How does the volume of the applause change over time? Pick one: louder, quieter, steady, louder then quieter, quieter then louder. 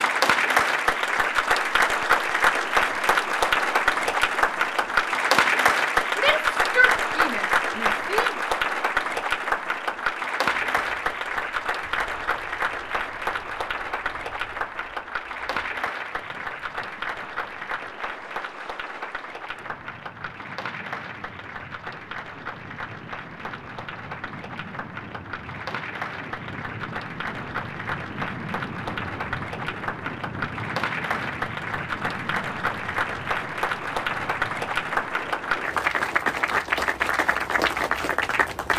quieter then louder.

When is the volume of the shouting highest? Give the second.
7 s.